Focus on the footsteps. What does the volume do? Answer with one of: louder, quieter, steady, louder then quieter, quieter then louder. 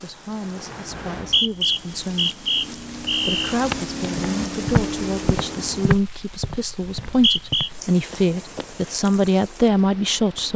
louder then quieter.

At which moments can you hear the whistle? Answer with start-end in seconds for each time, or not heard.
1.1-3.5, 6.8-7.7.